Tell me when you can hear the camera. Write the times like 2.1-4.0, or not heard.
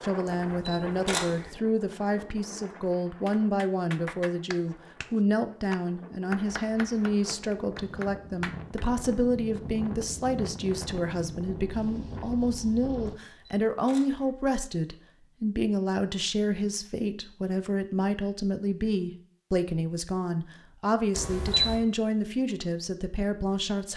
0.2-1.5, 13.2-14.3, 21.1-21.8.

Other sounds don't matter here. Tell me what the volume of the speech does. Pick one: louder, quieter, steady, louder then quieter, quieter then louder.
steady.